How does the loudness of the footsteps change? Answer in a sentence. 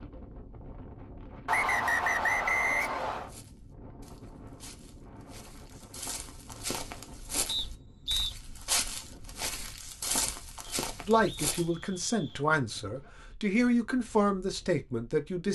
The volume of the footsteps goes up.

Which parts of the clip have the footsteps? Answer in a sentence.
You can hear the footsteps from 3.1 to 11.7 s.